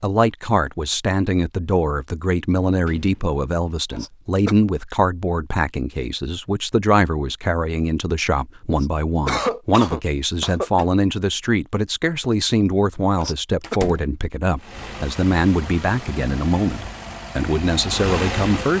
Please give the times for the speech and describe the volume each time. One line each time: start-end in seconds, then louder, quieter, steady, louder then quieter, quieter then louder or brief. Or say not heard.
0.0-18.7 steady.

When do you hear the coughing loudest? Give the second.
9 s.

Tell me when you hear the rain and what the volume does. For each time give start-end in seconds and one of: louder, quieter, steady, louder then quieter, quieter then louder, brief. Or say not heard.
not heard.